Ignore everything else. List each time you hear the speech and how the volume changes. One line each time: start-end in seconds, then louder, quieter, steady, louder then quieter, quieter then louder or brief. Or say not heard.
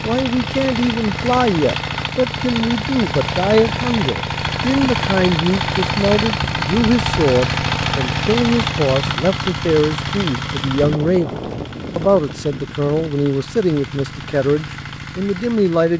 0.0-15.9 steady.